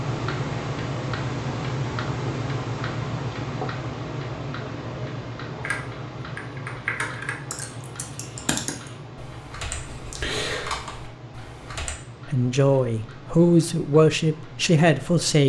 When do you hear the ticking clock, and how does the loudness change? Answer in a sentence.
You can hear the ticking clock from 0.0 to 15.4 s, getting quieter.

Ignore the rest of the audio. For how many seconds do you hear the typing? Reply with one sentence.
You can hear the typing for 6 seconds altogether.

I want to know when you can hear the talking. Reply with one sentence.
The talking can be heard from 12.2 to 15.4 s.